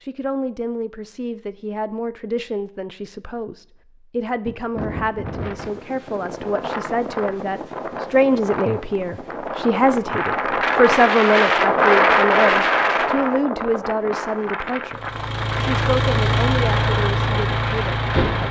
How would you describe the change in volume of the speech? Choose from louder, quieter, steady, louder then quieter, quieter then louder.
louder then quieter.